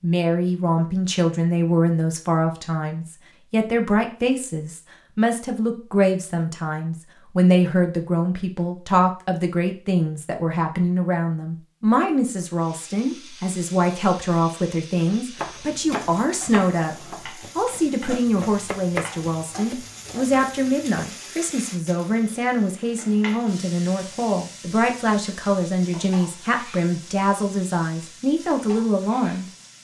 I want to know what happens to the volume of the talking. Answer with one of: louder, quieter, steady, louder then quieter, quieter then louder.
steady.